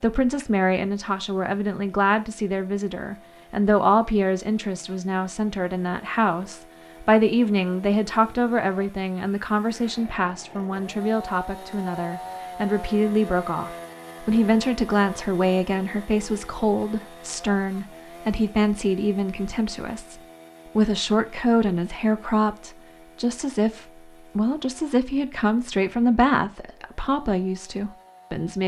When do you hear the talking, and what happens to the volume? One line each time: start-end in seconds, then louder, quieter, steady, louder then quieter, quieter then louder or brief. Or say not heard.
0.0-28.6 steady.